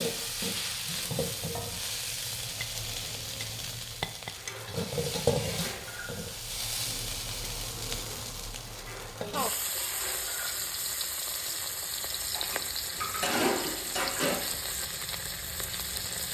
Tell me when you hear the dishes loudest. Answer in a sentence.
The volume of the dishes peaks at 13 seconds.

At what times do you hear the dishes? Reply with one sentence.
You can hear the dishes from 4.2 to 6.2 s, from 8.7 to 10.7 s and from 12.3 to 14.4 s.